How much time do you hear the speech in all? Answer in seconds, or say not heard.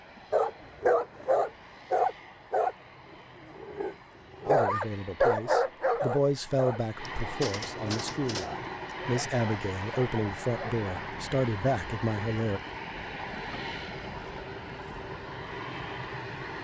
8 s.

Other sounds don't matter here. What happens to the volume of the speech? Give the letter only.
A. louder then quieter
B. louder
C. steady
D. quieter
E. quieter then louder
C.